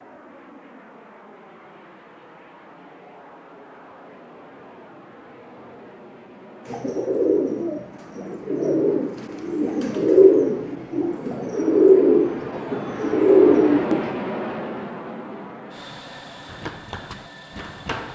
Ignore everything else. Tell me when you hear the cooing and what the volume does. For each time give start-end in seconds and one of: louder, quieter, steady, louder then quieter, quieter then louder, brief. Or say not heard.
6.7-14.2 louder.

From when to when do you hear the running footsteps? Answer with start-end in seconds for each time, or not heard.
16.4-18.0.